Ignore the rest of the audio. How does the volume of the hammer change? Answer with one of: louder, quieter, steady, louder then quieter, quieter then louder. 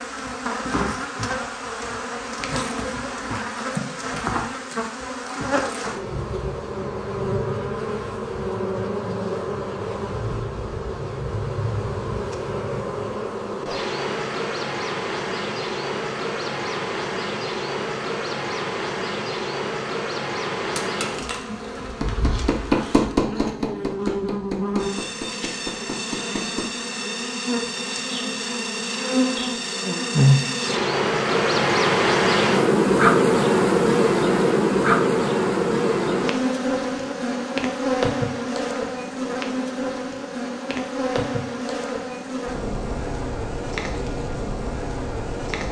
louder then quieter.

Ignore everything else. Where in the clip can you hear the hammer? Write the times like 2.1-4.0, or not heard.
20.8-26.7.